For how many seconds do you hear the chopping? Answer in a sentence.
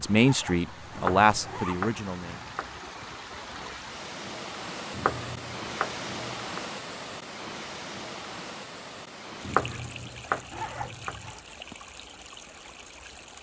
You can hear the chopping for 5 seconds altogether.